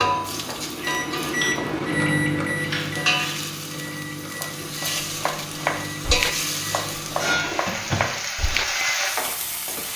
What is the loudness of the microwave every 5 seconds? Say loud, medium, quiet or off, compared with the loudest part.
loud, medium.